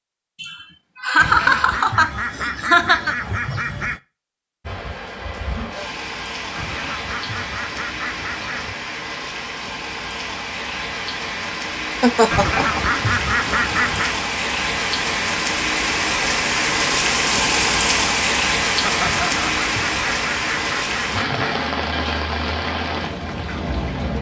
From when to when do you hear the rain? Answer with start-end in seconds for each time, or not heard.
4.6-24.1.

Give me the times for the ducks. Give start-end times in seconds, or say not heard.
1.1-4.0, 6.5-8.8, 12.3-14.2, 19.0-21.6.